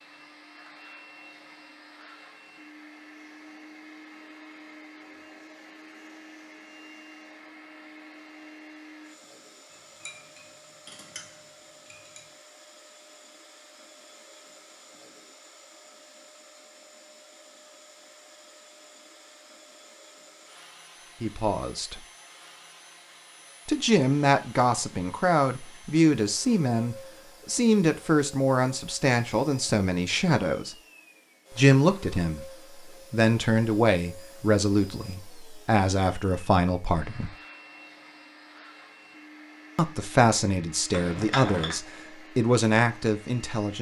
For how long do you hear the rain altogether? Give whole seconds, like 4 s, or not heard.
not heard.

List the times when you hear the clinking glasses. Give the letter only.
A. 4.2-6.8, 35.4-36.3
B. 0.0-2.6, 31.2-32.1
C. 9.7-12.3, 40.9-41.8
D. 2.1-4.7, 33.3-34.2
C.